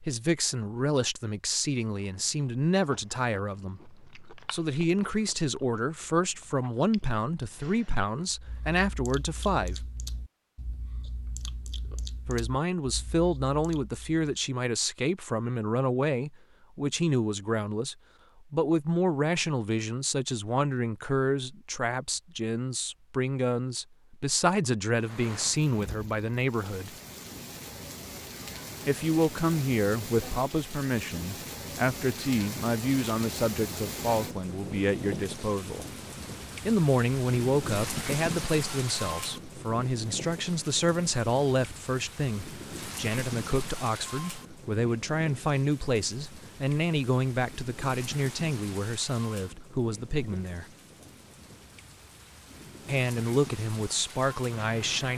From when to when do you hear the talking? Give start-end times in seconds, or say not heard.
0.0-9.8, 12.2-26.9, 28.9-35.9, 36.6-50.6, 52.9-55.1.